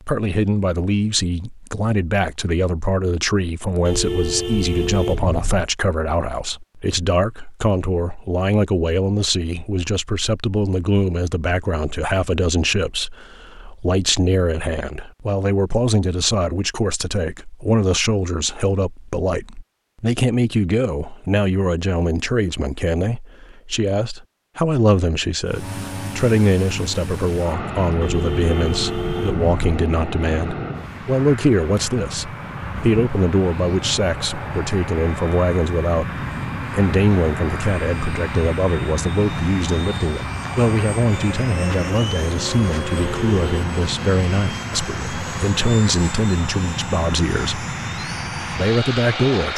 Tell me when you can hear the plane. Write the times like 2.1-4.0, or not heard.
25.4-49.5.